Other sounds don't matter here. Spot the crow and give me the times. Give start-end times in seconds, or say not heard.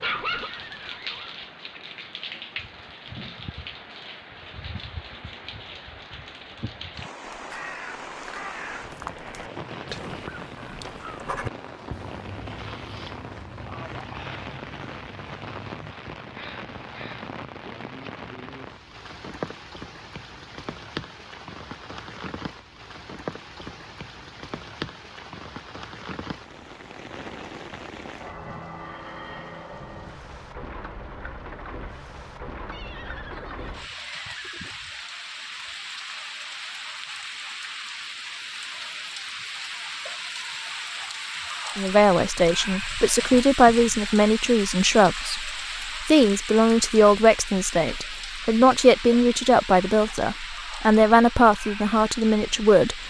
7.2-17.3.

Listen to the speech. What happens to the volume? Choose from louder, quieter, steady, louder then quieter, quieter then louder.
steady.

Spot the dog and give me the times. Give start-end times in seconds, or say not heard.
0.0-1.4.